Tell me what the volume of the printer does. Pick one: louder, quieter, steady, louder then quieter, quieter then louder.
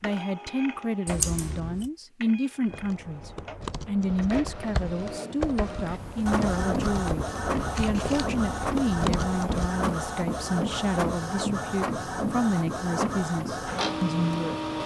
louder.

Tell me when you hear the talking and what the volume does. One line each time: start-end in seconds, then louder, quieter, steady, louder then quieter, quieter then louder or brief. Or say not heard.
0.0-14.6 steady.